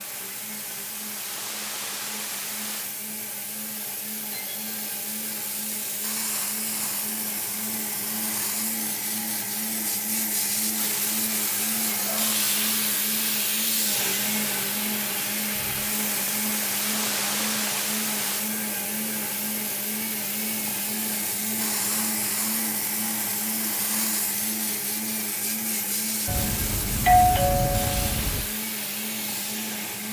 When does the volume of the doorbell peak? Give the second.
27 s.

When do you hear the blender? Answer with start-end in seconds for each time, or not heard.
0.0-30.0.